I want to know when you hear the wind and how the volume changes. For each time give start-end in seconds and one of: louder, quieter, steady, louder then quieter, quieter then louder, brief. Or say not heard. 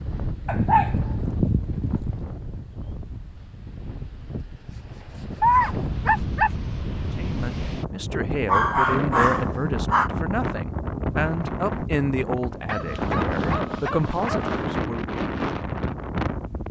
0.0-16.6 louder.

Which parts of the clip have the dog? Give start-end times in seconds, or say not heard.
0.5-2.3, 5.4-6.6, 8.4-10.1, 12.7-14.7.